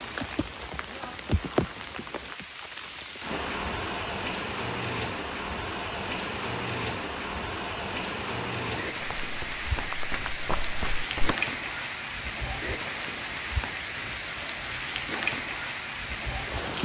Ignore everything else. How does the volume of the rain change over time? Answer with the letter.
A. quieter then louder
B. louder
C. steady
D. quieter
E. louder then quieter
C.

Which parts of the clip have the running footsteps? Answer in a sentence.
The running footsteps can be heard from 9.0 to 11.3 s.